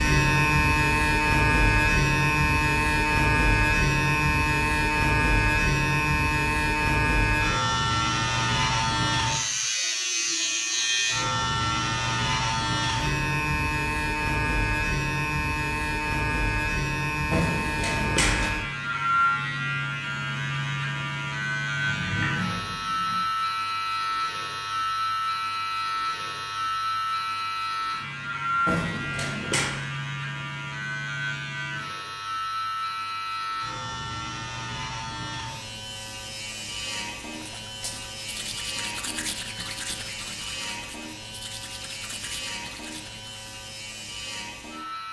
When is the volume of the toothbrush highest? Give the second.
39 s.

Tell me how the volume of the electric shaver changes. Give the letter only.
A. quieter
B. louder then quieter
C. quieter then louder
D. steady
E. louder
A.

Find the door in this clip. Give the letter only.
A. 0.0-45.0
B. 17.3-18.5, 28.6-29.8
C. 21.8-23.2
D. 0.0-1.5
C.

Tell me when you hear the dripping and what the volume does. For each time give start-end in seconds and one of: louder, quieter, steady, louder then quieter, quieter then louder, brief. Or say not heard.
not heard.